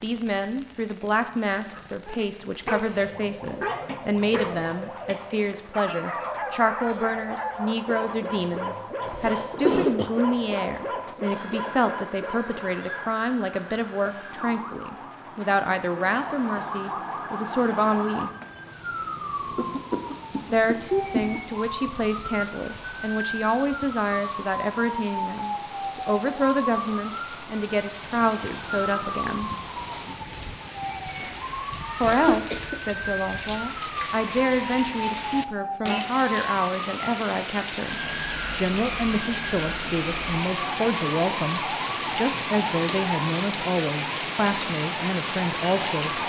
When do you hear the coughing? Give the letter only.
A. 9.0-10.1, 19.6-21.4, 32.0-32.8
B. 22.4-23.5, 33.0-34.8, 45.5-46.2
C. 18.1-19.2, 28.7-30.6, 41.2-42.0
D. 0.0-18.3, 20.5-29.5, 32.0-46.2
A.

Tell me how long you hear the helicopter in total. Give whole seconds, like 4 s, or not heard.
not heard.